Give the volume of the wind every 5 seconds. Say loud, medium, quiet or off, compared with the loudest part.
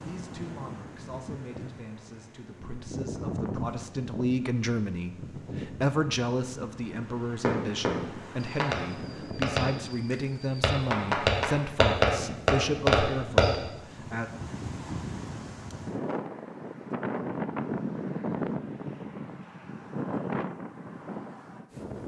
medium, medium, medium, loud, loud.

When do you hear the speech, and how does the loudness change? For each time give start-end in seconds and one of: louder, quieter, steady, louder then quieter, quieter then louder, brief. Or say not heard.
0.0-14.3 louder.